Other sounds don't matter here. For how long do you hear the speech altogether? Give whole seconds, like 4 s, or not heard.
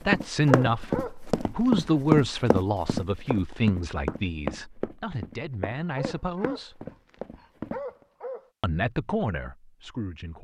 9 s.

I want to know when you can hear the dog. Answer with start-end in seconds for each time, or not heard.
0.2-2.0, 6.0-8.5.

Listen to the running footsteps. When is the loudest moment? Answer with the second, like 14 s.
2 s.